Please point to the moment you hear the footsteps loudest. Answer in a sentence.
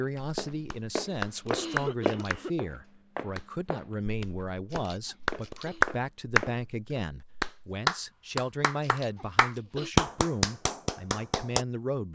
The loudest moment of the footsteps is at 2 seconds.